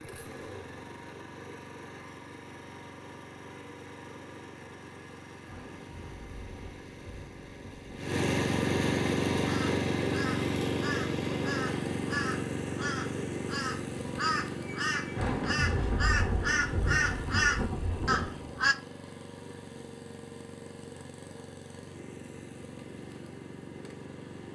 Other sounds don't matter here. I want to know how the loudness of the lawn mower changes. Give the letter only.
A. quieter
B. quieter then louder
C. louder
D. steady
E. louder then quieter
E.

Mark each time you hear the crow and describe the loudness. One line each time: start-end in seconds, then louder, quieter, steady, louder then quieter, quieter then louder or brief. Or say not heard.
9.4-18.8 louder.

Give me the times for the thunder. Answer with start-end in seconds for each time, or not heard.
5.5-8.1, 15.2-18.4.